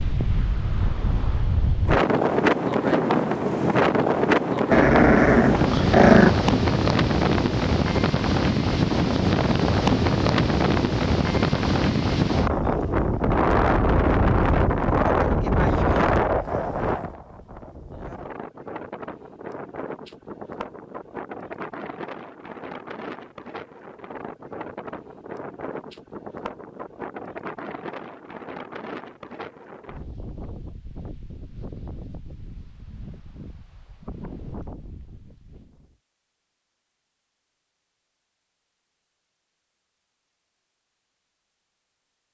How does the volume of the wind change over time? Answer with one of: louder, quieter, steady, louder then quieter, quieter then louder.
quieter.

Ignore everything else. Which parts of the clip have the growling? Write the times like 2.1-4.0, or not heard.
4.7-6.3.